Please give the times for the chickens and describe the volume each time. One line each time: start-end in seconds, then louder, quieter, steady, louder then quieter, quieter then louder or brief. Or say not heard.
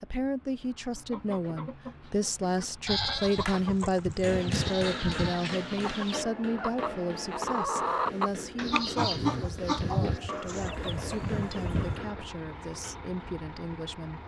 0.9-12.1 louder then quieter.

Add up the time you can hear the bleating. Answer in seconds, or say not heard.
6 s.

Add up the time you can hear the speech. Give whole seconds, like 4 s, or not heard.
14 s.